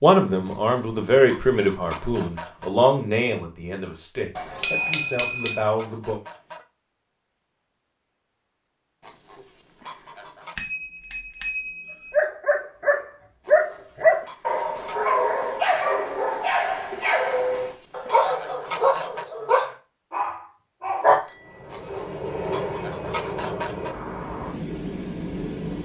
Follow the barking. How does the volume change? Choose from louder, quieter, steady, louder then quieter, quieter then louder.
quieter.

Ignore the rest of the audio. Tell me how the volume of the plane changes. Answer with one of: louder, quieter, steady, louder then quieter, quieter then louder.
steady.